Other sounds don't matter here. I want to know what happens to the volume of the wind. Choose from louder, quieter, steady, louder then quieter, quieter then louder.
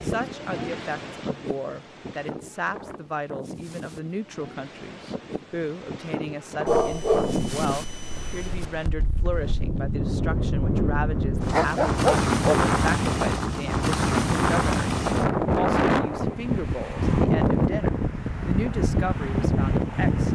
louder.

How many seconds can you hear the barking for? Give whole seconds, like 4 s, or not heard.
3 s.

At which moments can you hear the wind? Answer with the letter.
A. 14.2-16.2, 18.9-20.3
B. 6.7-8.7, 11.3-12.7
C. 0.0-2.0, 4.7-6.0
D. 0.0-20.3
D.